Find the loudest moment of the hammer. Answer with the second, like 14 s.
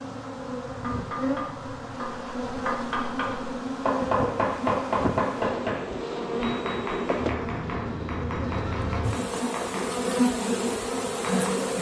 5 s.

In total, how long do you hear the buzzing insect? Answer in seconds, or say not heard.
12 s.